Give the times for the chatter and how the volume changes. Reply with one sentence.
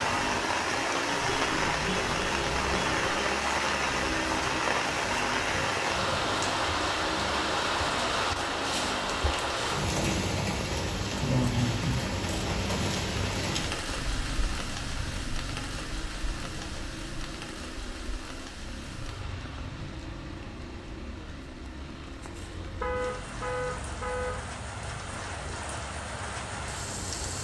The chatter can't be heard in this clip.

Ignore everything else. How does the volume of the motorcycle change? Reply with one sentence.
The loudness of the motorcycle goes down.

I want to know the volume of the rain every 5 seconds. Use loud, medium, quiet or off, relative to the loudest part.
loud, loud, loud, quiet, quiet, medium.